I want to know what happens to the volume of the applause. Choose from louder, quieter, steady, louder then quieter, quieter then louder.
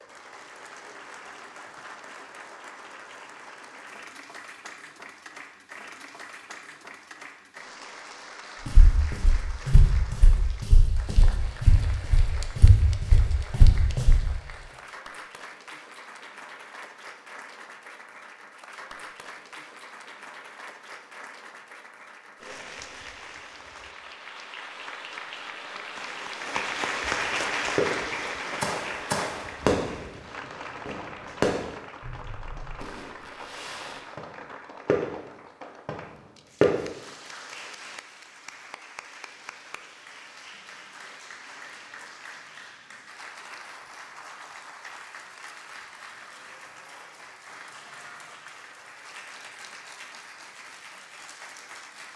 louder then quieter.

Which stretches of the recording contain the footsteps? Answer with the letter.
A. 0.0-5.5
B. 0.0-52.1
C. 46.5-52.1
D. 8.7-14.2
D.